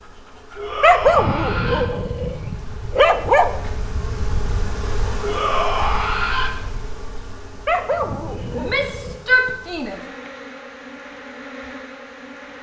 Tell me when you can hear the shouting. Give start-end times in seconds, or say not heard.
0.6-1.9, 5.2-6.5, 8.6-10.0.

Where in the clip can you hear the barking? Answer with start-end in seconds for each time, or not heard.
0.8-3.5, 7.7-9.2.